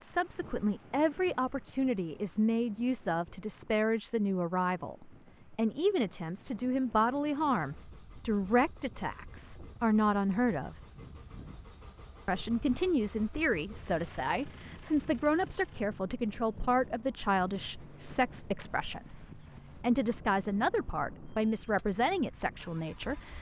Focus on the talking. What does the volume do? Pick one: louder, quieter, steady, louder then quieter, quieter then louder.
steady.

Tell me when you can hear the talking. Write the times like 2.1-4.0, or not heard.
0.0-10.8, 12.2-23.3.